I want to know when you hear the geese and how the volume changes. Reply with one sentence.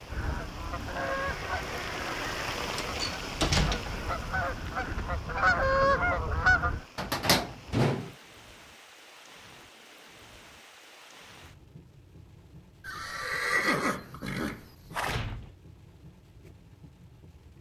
The geese can be heard from 0.1 to 6.8 s, getting quieter then louder.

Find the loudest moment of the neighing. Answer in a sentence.
The loudest moment of the neighing is at 14 seconds.